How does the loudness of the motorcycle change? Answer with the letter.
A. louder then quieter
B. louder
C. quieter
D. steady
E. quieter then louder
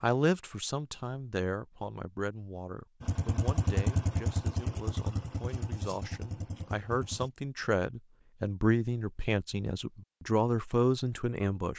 C.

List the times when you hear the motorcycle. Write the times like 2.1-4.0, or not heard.
3.0-7.3.